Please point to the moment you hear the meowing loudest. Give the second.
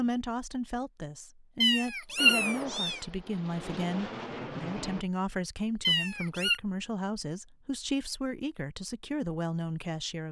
2 s.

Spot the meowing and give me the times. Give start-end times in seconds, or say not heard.
1.6-3.0, 5.8-6.6.